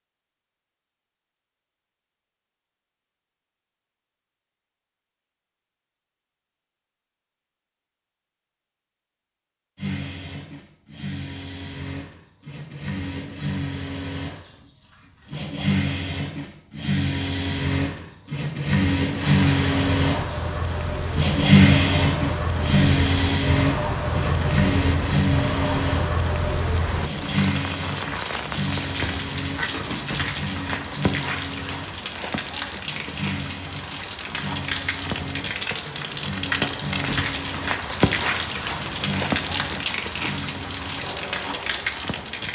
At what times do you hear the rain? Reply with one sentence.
The rain can be heard from 19.0 to 42.4 s.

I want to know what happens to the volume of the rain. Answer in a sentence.
The volume of the rain stays about the same.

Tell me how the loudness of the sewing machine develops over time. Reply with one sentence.
The loudness of the sewing machine goes up, then down.